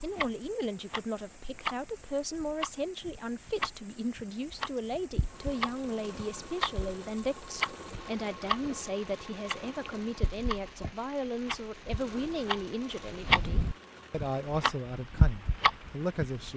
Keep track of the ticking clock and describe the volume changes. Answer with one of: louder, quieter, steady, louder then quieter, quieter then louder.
louder.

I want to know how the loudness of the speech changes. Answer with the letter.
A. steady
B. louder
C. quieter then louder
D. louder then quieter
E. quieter
A.